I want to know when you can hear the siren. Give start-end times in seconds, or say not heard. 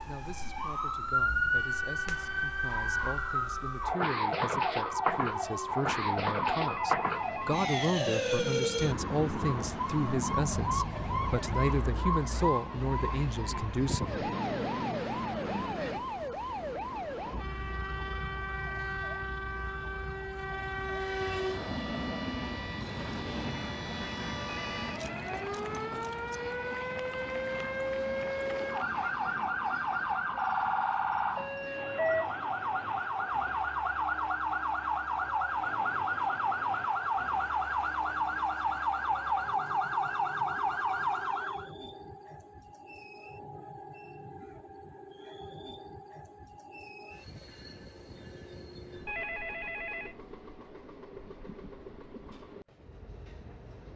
0.0-41.7.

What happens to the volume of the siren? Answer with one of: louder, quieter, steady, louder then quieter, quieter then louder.
quieter then louder.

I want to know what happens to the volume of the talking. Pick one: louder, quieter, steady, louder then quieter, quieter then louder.
louder.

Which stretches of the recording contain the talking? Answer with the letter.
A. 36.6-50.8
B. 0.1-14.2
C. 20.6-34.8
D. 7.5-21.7
B.